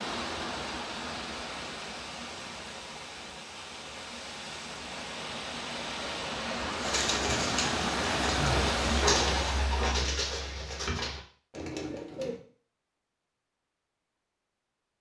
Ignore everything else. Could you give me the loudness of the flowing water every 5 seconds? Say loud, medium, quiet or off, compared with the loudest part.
medium, loud, off.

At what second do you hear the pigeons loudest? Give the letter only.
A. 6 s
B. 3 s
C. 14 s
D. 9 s
D.